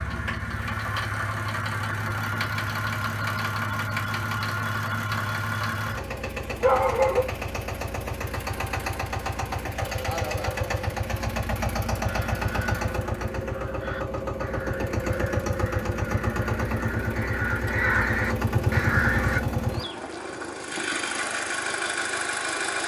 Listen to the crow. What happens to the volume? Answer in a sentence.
The loudness of the crow goes up.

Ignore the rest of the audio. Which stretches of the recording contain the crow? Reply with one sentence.
You can hear the crow from 11.9 to 19.4 s.